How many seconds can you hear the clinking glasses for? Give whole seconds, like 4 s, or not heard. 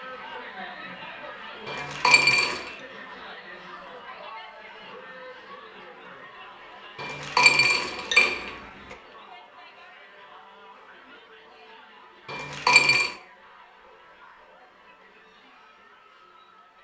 4 s.